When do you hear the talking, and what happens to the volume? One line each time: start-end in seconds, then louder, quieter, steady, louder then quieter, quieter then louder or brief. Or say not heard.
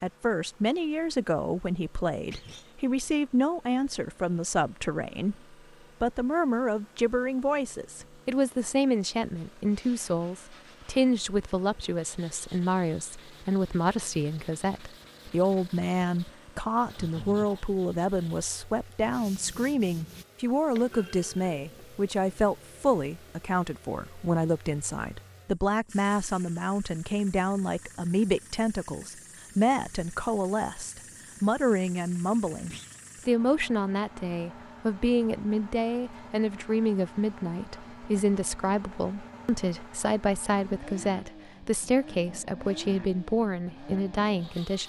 0.0-44.8 steady.